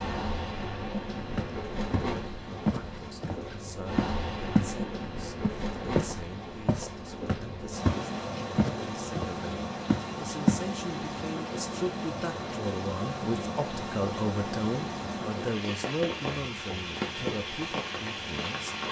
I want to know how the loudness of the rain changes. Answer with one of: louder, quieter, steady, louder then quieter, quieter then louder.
steady.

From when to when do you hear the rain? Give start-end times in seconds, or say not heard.
0.0-18.8.